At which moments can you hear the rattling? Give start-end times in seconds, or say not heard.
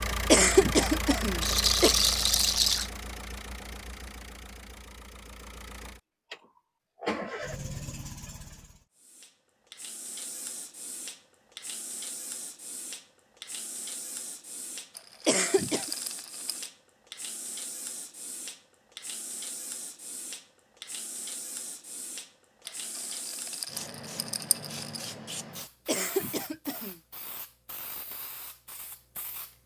1.4-2.9, 14.9-16.7, 22.6-25.1.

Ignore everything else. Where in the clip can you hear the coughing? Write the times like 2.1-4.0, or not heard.
0.2-1.9, 15.2-15.9, 25.9-26.9.